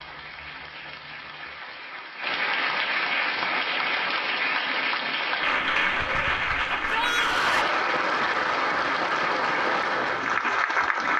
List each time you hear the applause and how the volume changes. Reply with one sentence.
The applause can be heard from 0.0 to 11.1 s, getting louder.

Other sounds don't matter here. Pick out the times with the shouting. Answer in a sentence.
The shouting can be heard from 6.8 to 7.8 s.